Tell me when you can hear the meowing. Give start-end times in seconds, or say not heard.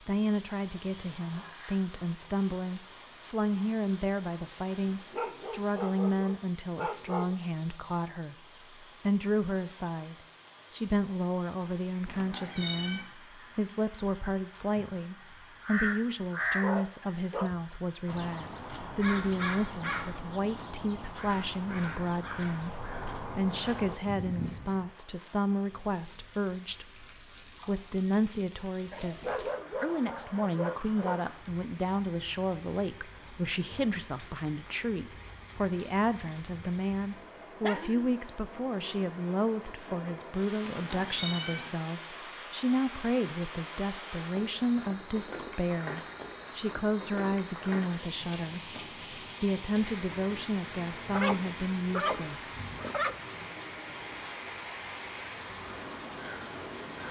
12.1-13.1, 40.6-41.7.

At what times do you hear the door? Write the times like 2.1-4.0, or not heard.
not heard.